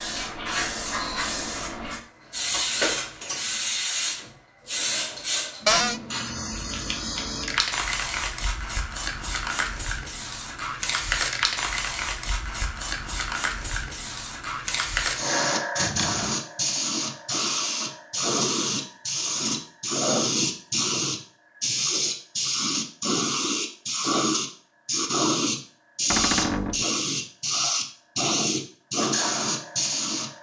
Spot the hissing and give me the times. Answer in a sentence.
The hissing can be heard from 0.0 to 30.3 s.